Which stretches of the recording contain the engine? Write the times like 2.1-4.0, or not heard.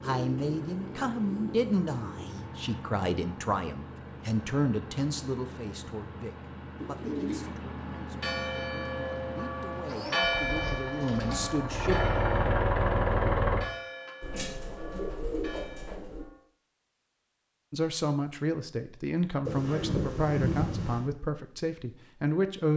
0.0-13.7.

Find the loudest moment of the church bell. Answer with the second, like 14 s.
10 s.